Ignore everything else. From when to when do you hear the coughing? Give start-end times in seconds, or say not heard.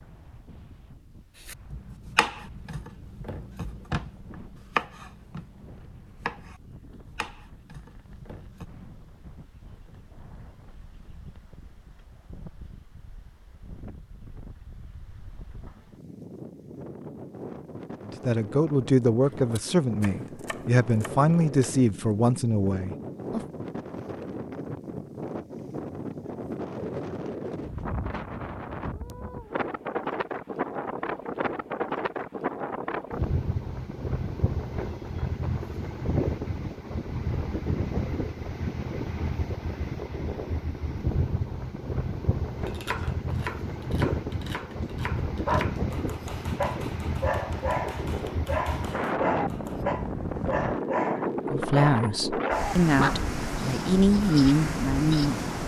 not heard.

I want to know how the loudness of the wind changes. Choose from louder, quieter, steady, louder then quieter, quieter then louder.
louder.